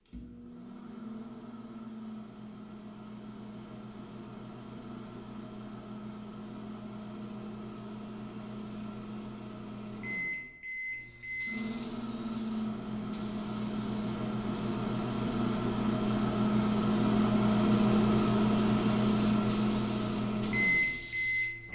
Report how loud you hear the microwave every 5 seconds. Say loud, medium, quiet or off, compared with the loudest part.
quiet, quiet, medium, loud, loud.